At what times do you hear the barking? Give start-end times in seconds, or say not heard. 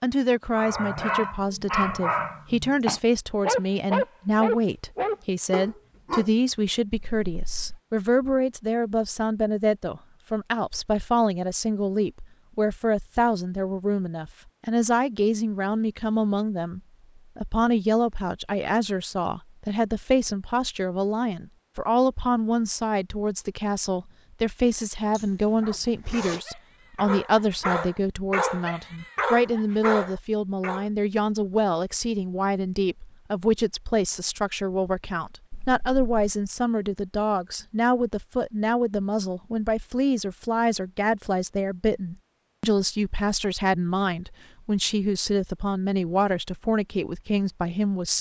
0.6-6.3, 25.6-30.9.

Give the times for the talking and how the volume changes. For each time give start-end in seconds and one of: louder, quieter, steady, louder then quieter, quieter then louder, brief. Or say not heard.
0.0-48.1 steady.